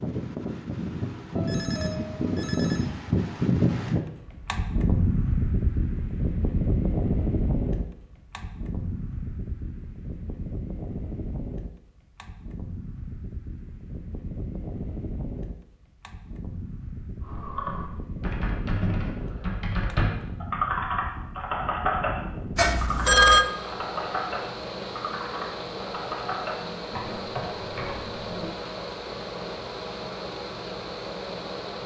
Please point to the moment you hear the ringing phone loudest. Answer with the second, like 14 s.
23 s.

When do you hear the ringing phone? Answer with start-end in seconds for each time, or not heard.
1.4-3.0, 22.6-23.4.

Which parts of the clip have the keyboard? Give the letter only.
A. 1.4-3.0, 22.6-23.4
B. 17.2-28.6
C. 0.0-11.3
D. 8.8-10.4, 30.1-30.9
B.